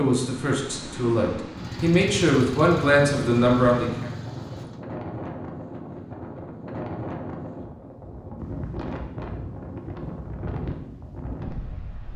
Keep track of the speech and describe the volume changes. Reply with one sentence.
The volume of the speech goes up.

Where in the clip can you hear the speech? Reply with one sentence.
You can hear the speech from 0.0 to 4.1 s.